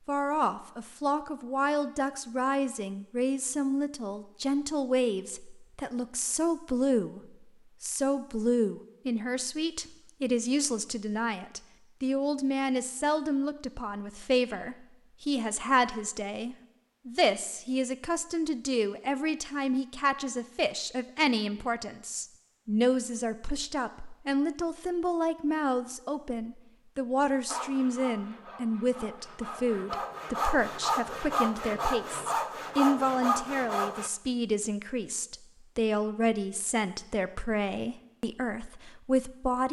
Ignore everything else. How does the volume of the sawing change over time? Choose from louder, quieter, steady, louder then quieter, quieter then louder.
louder.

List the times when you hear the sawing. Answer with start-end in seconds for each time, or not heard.
27.4-34.1.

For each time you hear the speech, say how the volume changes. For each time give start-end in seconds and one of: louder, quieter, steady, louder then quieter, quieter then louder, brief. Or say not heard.
0.1-39.6 steady.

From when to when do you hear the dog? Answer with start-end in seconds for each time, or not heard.
not heard.